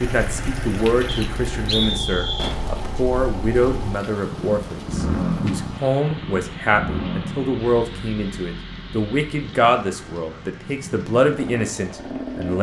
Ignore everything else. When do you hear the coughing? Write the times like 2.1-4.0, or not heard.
not heard.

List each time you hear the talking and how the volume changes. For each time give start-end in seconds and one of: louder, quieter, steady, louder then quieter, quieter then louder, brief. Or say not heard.
0.0-12.5 steady.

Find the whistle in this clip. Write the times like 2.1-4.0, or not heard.
1.1-2.5.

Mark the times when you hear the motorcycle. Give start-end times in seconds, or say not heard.
0.0-12.5.